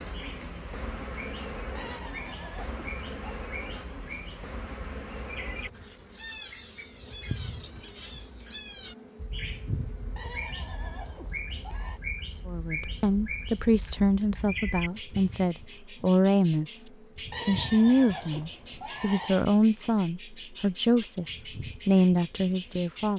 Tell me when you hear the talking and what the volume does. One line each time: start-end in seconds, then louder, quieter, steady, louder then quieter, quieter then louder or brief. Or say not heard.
12.4-23.1 steady.